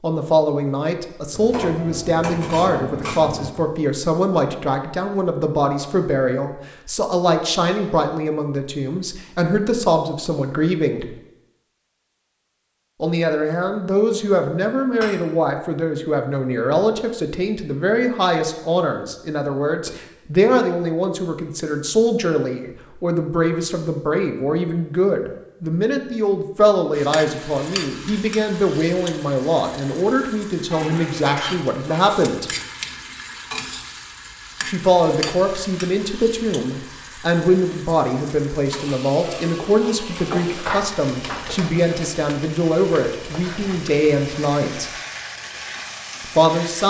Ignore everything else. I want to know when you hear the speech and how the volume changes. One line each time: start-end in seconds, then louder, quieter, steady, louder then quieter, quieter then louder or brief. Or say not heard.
0.0-11.2 steady
13.0-32.5 steady
34.6-44.9 steady
46.2-46.8 brief.